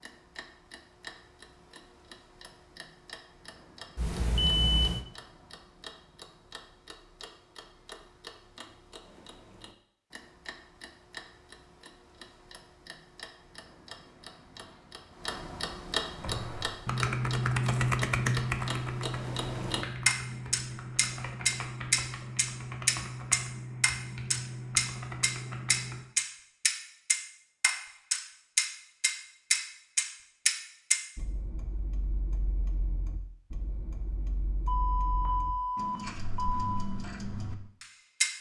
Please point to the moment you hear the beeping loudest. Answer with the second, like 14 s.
5 s.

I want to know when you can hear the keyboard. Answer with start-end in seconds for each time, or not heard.
16.1-26.1.